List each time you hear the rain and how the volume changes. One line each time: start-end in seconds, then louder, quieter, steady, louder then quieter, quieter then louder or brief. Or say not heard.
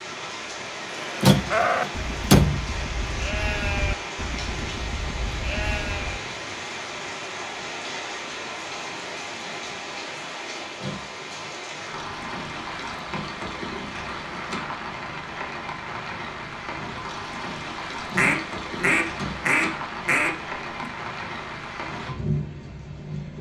0.0-23.3 steady.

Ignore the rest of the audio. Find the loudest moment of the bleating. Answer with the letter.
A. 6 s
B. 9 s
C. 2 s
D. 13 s
C.